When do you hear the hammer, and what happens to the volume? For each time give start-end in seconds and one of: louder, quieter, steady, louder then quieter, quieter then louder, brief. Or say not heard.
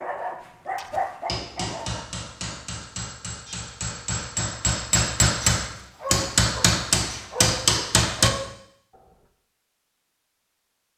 1.2-8.3 louder.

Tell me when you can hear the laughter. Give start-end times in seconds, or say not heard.
not heard.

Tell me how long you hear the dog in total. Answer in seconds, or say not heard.
5 s.